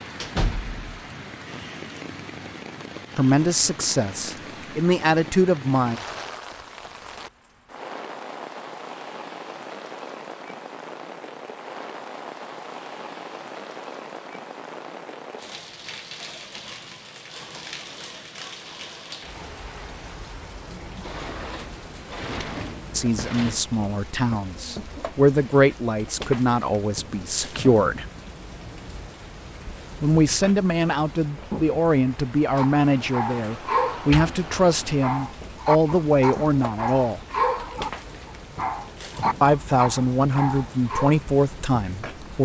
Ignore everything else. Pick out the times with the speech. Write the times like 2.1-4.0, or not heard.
3.1-6.0, 22.9-28.1, 30.0-37.2, 39.4-42.4.